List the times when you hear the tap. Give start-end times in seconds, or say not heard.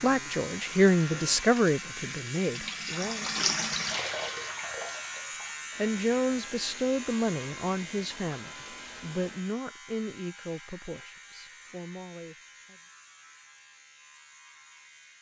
0.1-9.6.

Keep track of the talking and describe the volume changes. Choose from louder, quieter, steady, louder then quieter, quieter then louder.
quieter.